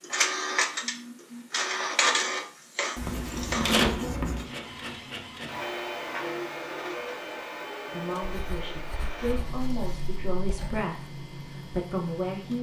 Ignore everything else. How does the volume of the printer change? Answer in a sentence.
The loudness of the printer goes down.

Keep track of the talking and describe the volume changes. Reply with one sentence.
The loudness of the talking goes up.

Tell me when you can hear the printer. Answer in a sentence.
You can hear the printer from 0.0 to 12.5 s.